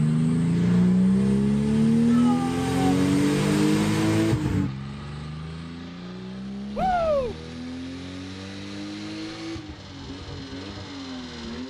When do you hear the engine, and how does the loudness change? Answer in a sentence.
You can hear the engine from 0.0 to 11.6 s, getting quieter.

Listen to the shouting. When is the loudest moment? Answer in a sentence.
The volume of the shouting peaks at 7 seconds.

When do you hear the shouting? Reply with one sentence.
The shouting can be heard from 2.0 to 2.9 s and from 6.8 to 7.3 s.